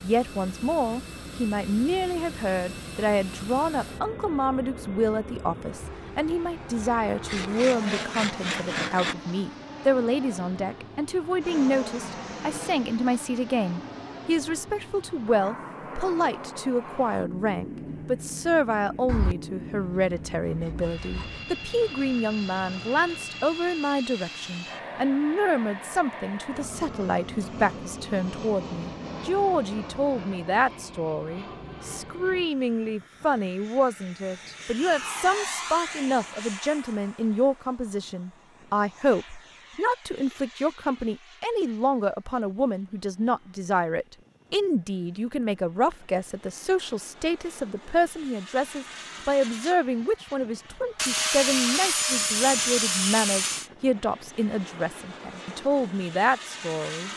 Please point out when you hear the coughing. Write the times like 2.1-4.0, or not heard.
not heard.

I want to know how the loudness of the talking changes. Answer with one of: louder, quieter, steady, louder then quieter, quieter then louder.
steady.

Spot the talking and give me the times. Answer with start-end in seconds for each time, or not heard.
0.0-57.1.